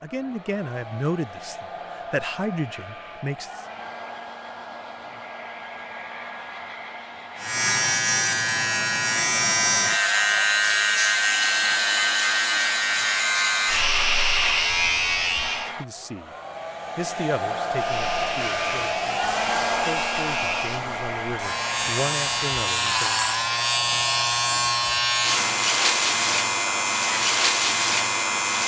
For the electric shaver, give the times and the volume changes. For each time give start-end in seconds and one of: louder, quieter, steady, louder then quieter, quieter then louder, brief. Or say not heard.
7.3-15.8 steady
17.7-28.6 louder.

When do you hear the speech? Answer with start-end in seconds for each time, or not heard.
0.0-3.6, 15.7-16.3, 16.9-23.2.